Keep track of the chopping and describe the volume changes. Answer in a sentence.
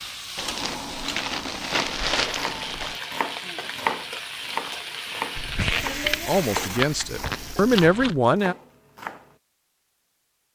The volume of the chopping goes down.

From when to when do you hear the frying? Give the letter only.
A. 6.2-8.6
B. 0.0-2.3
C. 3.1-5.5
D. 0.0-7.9
D.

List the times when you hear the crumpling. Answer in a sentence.
You can hear the crumpling from 0.3 to 3.0 s and from 5.3 to 8.2 s.